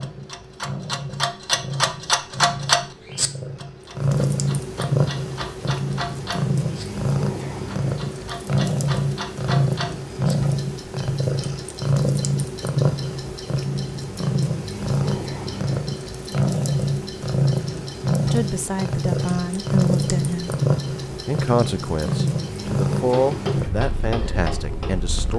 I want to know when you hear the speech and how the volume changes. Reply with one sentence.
You can hear the speech briefly from 18.3 to 20.6 s; and from 21.2 to 25.3 s, getting louder then quieter.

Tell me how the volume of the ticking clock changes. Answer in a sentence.
The volume of the ticking clock goes down, then up.